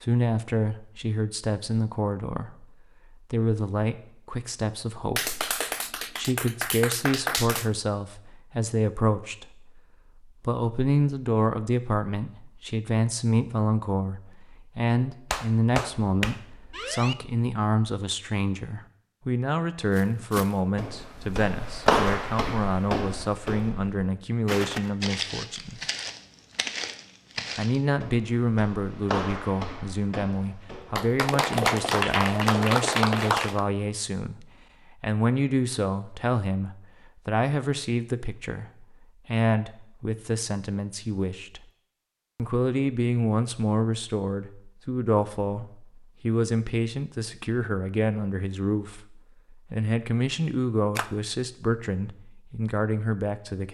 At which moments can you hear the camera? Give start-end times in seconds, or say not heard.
not heard.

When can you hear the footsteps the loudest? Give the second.
22 s.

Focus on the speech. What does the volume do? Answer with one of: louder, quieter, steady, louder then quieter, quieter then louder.
steady.